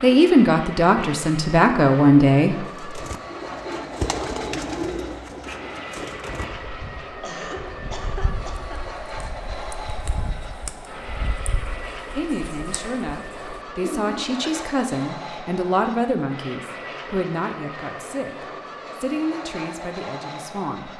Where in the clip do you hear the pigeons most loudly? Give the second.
4 s.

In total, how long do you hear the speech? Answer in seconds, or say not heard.
12 s.